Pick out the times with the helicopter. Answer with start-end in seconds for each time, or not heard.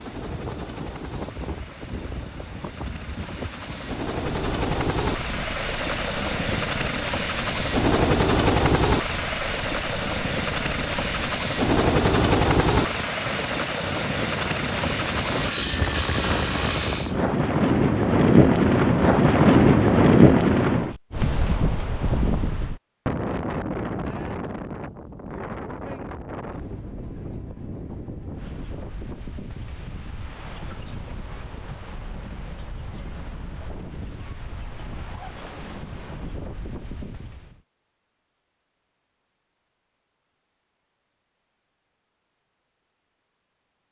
0.0-17.1.